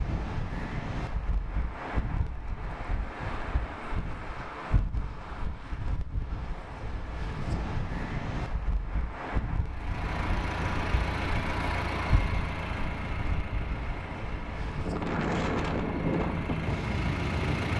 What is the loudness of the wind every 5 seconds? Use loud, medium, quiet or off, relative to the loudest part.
medium, medium, medium, loud.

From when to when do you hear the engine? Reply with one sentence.
You can hear the engine from 9.7 to 17.7 s.